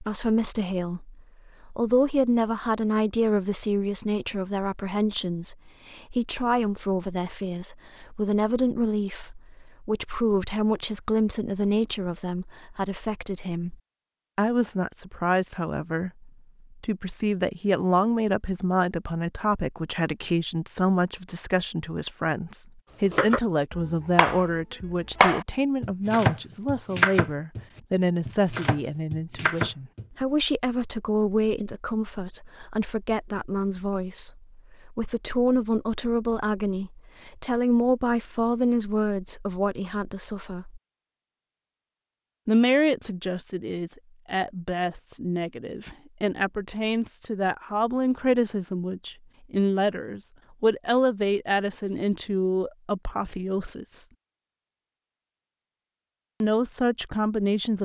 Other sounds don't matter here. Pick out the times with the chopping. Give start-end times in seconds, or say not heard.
23.1-30.1.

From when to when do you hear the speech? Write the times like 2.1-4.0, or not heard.
0.0-13.8, 14.3-40.8, 42.5-54.0, 56.4-57.8.